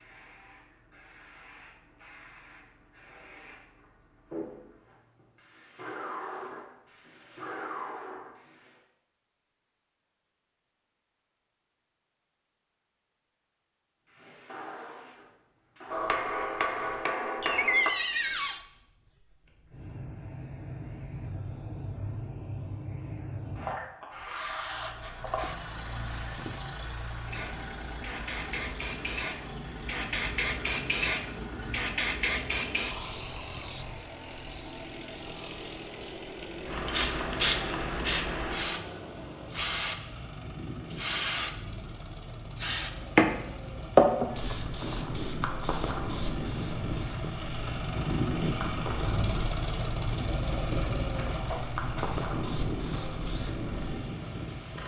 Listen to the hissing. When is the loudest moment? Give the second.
44 s.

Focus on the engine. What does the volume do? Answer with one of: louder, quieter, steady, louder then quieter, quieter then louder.
louder.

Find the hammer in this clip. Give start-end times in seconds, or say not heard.
15.9-17.9.